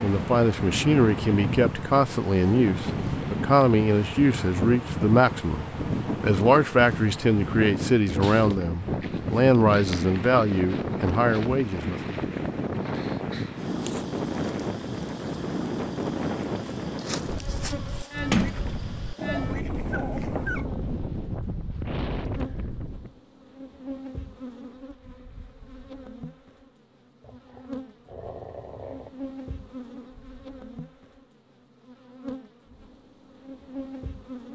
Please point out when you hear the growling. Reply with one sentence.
You can hear the growling from 0.6 to 1.0 s, from 19.1 to 20.6 s and from 27.2 to 29.1 s.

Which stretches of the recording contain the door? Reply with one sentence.
You can hear the door from 18.3 to 19.4 s.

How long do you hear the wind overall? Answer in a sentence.
You can hear the wind for 23 seconds altogether.